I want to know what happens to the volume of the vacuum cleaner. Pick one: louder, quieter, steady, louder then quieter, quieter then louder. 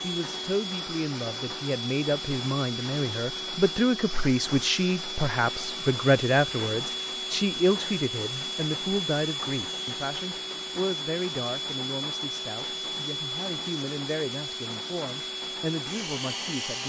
steady.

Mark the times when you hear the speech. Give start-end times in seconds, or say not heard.
0.0-16.8.